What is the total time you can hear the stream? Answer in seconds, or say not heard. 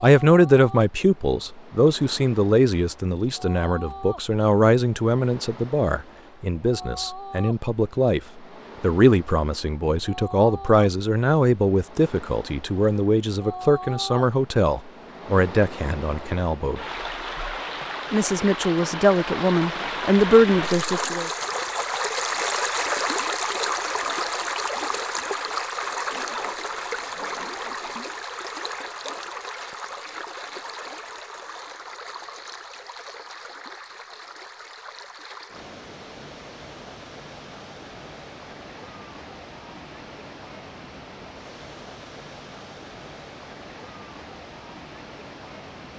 46 s.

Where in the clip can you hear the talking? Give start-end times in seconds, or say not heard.
0.0-8.2, 8.8-16.8, 18.1-21.3.